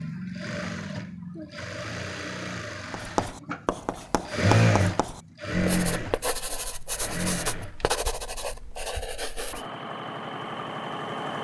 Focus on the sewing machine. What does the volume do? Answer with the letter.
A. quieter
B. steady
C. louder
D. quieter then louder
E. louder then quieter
E.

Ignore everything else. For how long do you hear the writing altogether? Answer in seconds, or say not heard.
7 s.